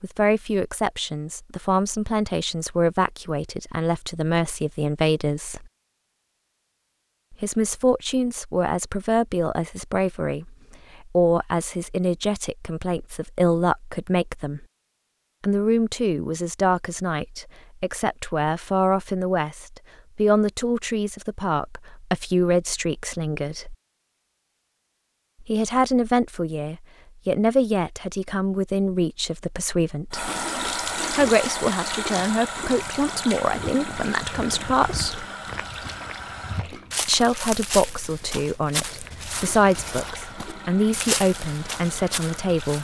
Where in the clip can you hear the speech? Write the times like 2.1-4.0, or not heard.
0.0-5.7, 7.3-14.7, 15.4-23.8, 25.4-30.3, 31.1-35.2, 37.0-42.7.